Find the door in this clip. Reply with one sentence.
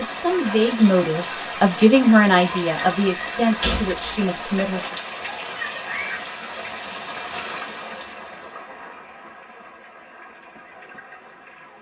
You can hear the door from 3.4 to 4.2 s.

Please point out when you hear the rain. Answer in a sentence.
You can hear the rain from 0.0 to 11.7 s.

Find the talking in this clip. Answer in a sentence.
You can hear the talking from 0.0 to 5.0 s.